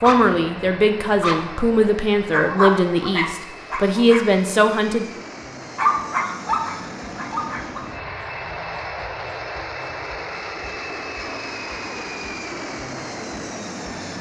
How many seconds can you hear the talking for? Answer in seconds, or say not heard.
5 s.